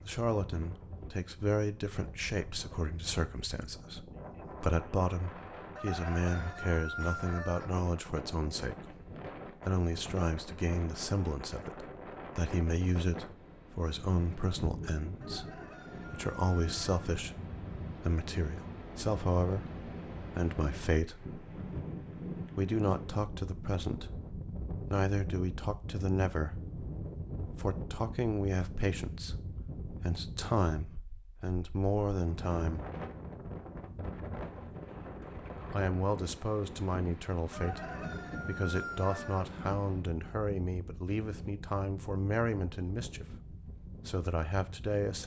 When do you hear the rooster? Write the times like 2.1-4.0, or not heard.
5.8-7.7, 15.2-17.1, 37.5-39.5.